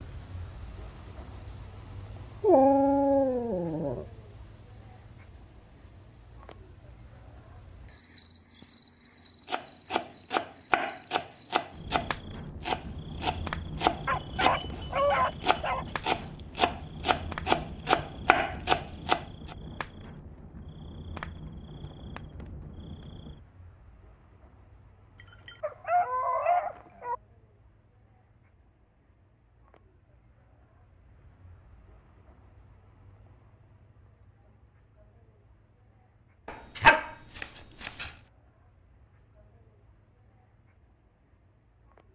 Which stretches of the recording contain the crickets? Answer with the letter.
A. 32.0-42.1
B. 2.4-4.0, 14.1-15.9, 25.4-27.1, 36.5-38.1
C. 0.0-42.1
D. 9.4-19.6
C.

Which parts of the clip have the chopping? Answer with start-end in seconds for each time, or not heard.
9.4-19.6.